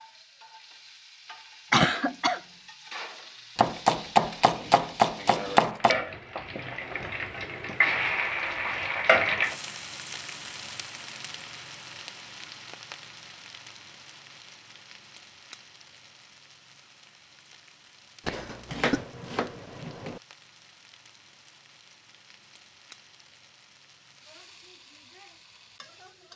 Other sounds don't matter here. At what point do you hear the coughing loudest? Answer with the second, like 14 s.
2 s.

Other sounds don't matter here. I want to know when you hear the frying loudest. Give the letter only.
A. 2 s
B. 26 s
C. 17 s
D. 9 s
D.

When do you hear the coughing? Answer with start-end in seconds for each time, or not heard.
1.7-2.4, 18.2-19.1.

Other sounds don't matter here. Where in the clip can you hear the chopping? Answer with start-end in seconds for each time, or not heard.
3.5-6.0, 18.7-20.2.